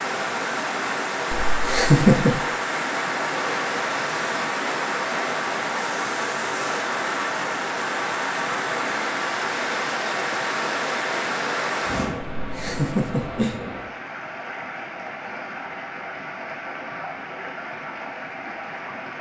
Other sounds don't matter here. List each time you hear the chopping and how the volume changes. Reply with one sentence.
You can't hear the chopping here.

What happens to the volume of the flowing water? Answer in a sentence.
The loudness of the flowing water goes down.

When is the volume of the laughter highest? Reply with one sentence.
The volume of the laughter peaks at 2 seconds.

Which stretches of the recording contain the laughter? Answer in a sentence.
The laughter can be heard from 1.5 to 2.4 s and from 12.3 to 13.6 s.